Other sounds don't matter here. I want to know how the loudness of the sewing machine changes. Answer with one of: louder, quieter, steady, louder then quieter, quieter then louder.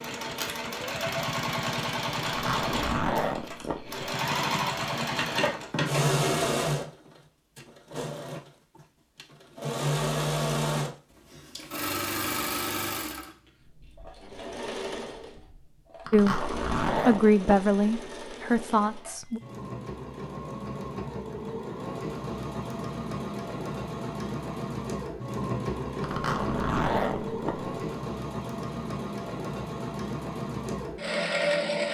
quieter then louder.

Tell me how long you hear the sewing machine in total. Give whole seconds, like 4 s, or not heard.
32 s.